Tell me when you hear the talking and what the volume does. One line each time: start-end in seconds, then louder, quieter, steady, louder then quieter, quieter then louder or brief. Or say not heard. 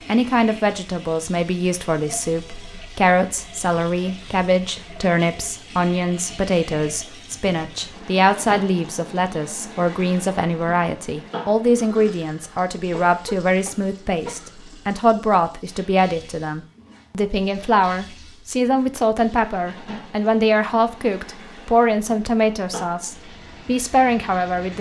0.1-24.7 steady.